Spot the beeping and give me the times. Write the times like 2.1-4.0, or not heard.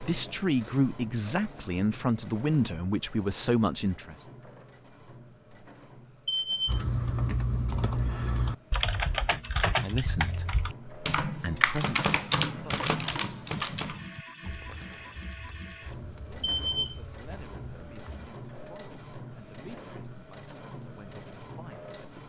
6.2-6.8, 16.4-16.9.